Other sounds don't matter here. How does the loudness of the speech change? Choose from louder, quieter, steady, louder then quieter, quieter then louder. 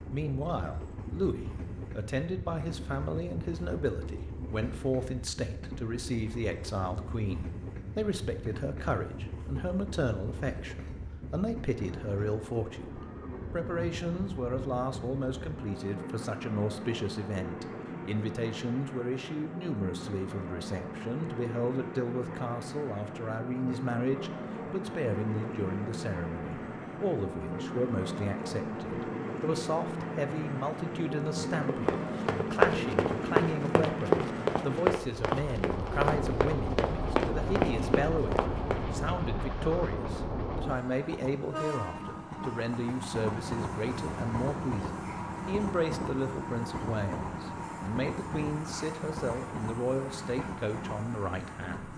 steady.